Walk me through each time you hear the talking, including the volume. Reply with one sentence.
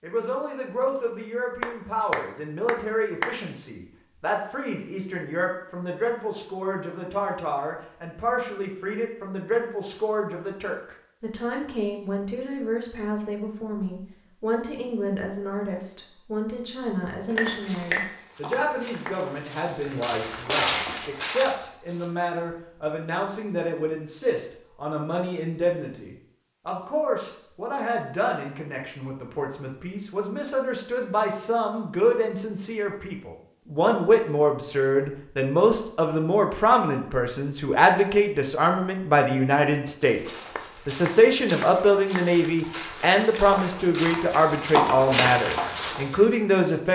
You can hear the talking from 0.0 to 46.9 s, getting louder.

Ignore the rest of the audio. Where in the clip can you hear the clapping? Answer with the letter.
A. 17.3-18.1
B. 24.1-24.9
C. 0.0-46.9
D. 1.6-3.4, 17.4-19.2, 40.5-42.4
D.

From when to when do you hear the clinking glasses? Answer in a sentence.
You can hear the clinking glasses from 17.3 to 18.1 s.